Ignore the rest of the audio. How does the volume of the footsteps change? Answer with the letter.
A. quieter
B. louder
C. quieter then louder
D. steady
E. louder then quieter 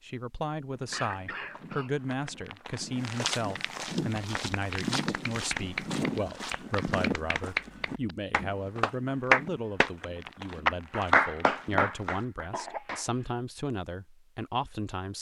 E.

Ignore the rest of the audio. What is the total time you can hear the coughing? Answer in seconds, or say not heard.
2 s.